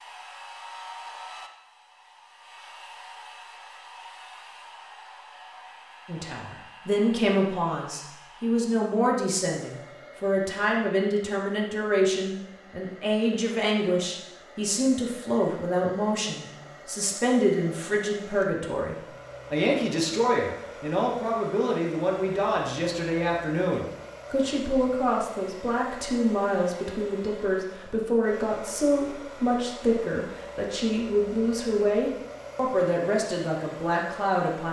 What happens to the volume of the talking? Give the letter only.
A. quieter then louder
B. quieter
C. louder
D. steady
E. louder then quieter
D.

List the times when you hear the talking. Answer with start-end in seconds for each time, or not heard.
6.0-34.6.